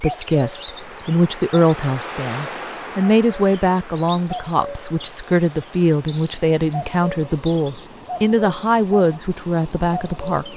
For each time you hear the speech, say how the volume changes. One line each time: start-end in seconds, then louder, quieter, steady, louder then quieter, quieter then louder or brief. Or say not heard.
0.0-10.5 steady.